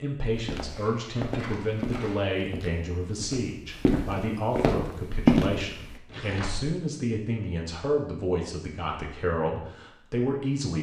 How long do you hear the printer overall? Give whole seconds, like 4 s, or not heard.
not heard.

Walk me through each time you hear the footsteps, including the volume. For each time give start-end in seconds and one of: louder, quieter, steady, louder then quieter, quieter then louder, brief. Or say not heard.
0.3-6.0 quieter then louder.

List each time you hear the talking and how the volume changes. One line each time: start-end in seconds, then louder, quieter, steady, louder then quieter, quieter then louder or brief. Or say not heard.
0.0-10.7 steady.